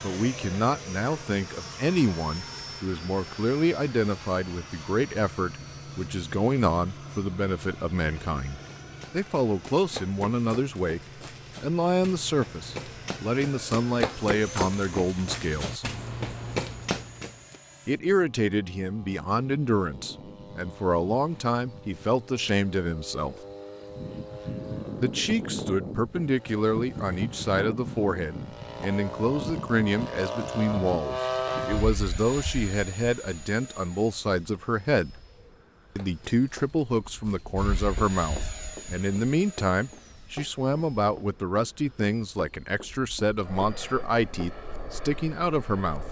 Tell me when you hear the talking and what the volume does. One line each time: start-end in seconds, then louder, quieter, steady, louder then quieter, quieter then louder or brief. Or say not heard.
0.0-15.9 steady
17.9-23.4 steady
24.9-35.1 steady
36.0-46.0 steady.